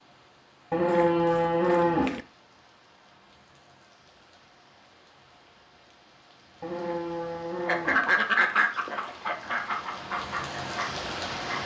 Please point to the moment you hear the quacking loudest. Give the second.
8 s.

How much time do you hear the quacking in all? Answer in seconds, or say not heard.
4 s.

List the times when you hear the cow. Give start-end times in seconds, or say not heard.
0.7-2.2, 6.6-8.2.